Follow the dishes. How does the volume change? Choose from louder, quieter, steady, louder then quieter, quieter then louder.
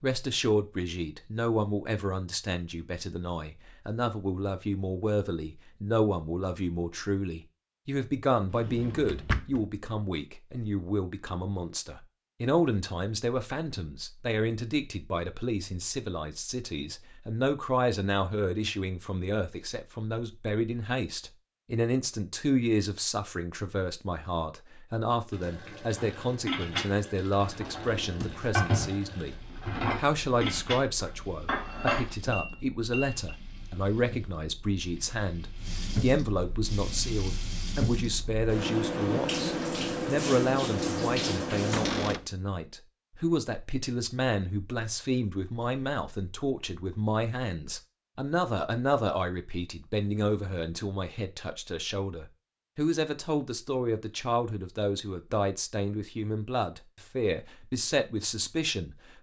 steady.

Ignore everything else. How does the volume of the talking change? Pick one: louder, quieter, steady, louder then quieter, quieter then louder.
steady.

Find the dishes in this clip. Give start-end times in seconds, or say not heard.
25.9-33.4.